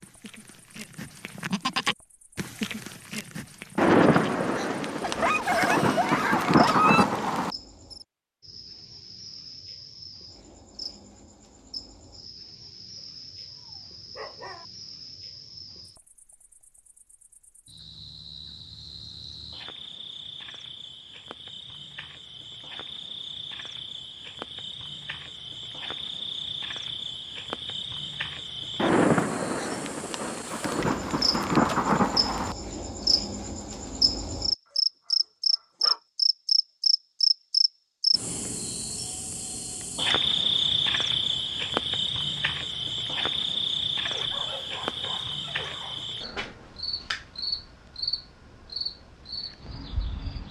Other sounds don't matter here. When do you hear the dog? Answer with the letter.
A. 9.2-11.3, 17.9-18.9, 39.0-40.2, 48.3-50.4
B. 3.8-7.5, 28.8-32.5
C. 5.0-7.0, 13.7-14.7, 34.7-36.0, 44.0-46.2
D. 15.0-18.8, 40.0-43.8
C.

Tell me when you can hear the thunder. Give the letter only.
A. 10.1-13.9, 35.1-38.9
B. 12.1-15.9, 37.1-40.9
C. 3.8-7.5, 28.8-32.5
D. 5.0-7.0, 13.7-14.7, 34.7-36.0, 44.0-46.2
C.